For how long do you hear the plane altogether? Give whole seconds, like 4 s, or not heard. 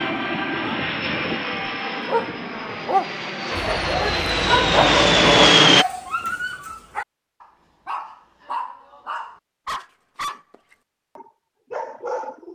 6 s.